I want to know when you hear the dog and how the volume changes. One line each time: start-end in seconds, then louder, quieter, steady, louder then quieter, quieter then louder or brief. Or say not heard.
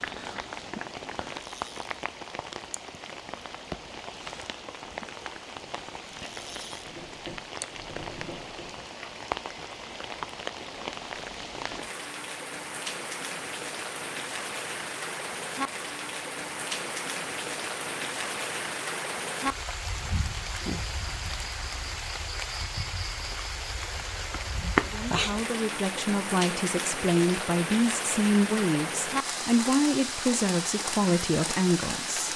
not heard.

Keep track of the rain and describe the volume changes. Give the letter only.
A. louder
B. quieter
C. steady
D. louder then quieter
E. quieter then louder
A.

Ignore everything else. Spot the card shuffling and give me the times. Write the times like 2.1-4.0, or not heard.
0.0-1.2, 24.3-24.9.